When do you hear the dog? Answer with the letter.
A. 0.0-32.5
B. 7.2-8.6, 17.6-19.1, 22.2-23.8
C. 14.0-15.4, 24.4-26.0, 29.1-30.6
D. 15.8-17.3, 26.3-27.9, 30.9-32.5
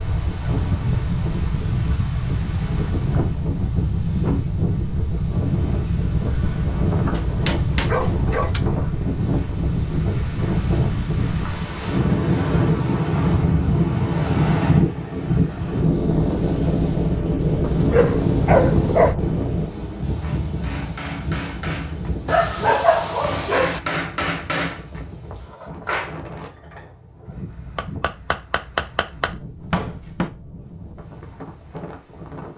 B.